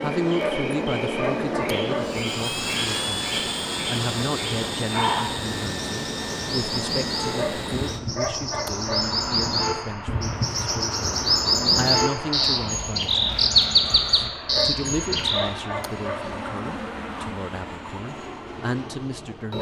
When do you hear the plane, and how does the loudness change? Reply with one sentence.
You can hear the plane from 0.0 to 19.5 s, getting quieter.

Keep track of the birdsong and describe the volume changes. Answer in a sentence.
The volume of the birdsong goes up.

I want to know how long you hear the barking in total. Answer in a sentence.
The barking can be heard for 6 seconds in total.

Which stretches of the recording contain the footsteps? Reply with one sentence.
You can't hear the footsteps here.